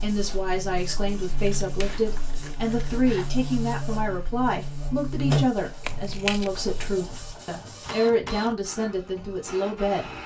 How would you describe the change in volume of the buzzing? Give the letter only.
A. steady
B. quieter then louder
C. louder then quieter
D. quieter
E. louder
C.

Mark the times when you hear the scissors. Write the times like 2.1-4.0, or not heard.
1.2-3.3, 5.8-6.5.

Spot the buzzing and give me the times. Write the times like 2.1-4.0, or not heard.
0.0-7.4.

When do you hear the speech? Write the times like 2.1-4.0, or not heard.
0.0-10.2.